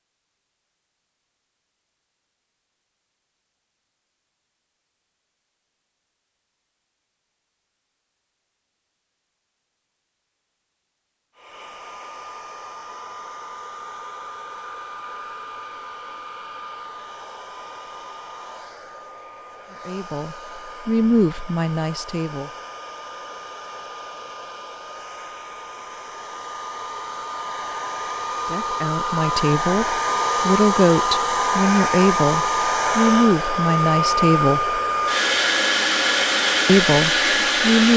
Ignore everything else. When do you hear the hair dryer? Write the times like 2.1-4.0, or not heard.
11.3-37.9.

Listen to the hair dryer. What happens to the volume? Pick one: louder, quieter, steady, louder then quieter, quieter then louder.
louder.